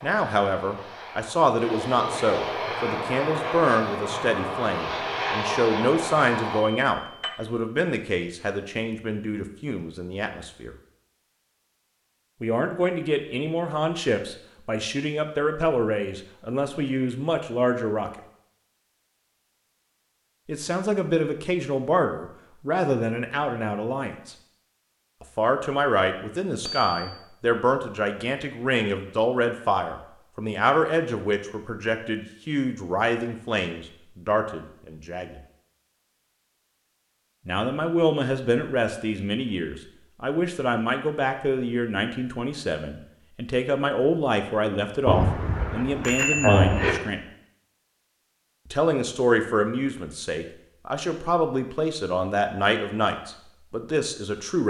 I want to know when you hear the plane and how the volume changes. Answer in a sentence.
You can hear the plane from 0.0 to 6.7 s, getting louder.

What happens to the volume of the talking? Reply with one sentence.
The loudness of the talking stays about the same.